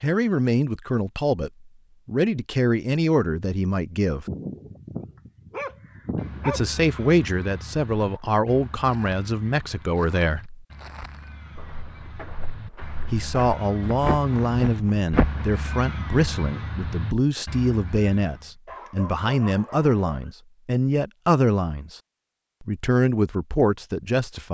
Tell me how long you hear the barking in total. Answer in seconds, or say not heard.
4 s.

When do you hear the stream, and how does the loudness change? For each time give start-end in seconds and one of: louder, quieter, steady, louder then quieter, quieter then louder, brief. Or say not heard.
not heard.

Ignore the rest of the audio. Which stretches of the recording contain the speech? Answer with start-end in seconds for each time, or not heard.
0.0-4.2, 6.5-10.6, 13.1-22.0, 22.6-24.4.